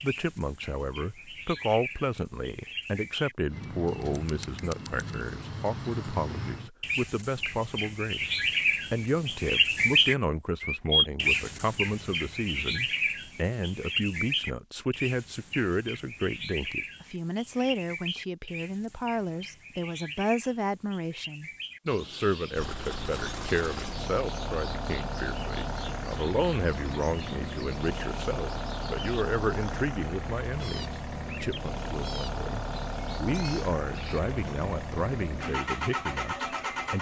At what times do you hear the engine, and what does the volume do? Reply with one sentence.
The engine can be heard from 22.6 to 36.9 s, at a steady volume.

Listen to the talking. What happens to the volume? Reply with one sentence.
The loudness of the talking stays about the same.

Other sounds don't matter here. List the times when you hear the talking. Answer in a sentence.
The talking can be heard from 0.0 to 36.9 s.